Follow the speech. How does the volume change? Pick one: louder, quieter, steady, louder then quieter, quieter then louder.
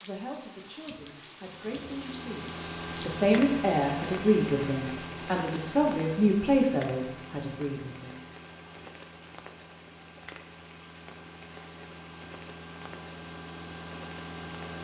louder.